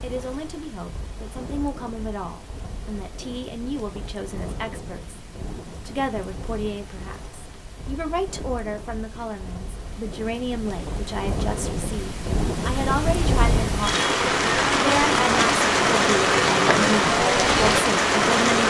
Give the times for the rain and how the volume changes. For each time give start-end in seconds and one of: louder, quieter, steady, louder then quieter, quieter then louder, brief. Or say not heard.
0.0-18.6 louder.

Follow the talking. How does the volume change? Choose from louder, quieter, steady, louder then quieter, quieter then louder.
louder.